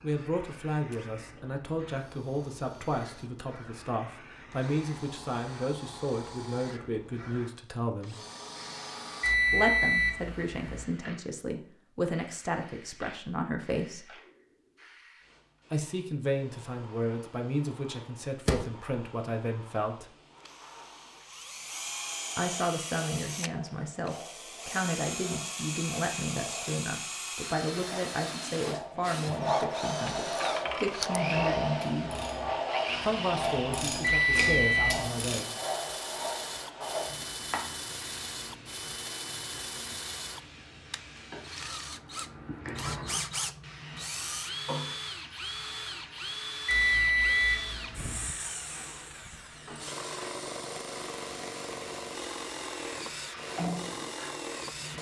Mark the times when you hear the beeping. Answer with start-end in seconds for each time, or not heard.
9.2-10.8, 34.0-35.1, 46.6-48.3.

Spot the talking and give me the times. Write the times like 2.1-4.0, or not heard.
0.0-8.2, 9.5-14.1, 15.7-20.1, 22.4-32.1, 33.0-35.5.